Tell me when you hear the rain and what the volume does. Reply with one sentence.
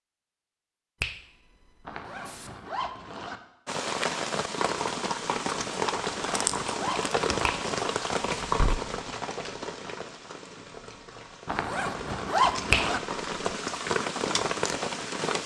The rain can be heard from 3.6 to 15.4 s, getting quieter then louder.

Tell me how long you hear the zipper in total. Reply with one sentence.
The zipper can be heard for 4 seconds in total.